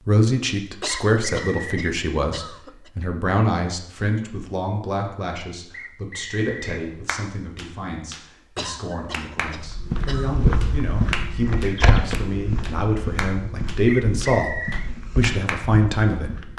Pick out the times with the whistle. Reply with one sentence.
You can hear the whistle from 0.8 to 1.9 s, from 5.7 to 6.8 s and from 13.8 to 14.9 s.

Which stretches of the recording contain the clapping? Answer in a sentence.
The clapping can be heard from 7.0 to 9.6 s and from 10.6 to 16.5 s.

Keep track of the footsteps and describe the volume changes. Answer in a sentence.
The volume of the footsteps goes down.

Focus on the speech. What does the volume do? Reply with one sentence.
The volume of the speech goes down, then up.